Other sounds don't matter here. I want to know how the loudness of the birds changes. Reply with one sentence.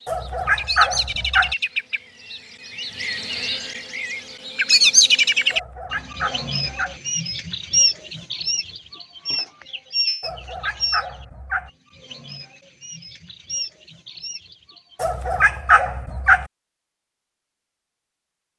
The volume of the birds goes up, then down.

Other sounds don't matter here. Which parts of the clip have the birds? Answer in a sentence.
You can hear the birds from 0.0 to 15.1 s.